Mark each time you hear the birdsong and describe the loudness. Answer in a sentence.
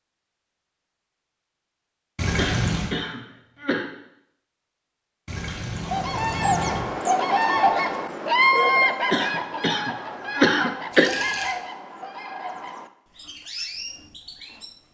You can hear the birdsong from 5.8 to 14.8 s, getting quieter.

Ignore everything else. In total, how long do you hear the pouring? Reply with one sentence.
You can hear the pouring for 3 seconds altogether.